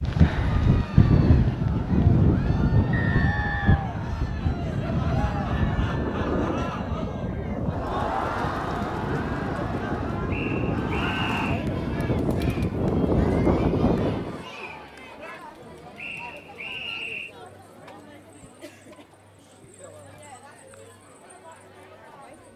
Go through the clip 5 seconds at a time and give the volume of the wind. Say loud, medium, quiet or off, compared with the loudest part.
loud, medium, loud, off, off.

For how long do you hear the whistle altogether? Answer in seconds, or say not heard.
4 s.